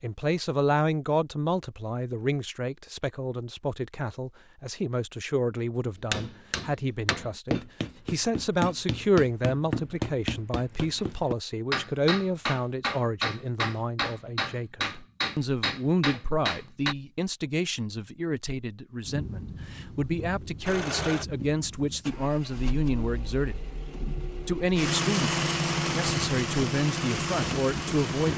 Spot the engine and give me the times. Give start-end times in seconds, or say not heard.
20.6-28.3.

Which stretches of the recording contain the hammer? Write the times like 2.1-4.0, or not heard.
6.0-16.9.